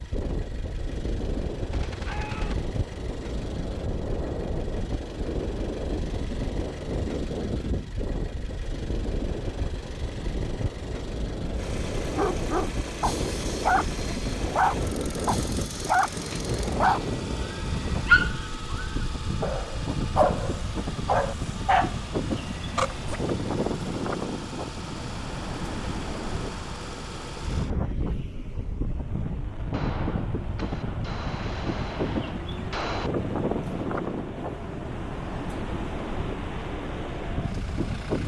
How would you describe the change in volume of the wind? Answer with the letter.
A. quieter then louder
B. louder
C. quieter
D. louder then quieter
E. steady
E.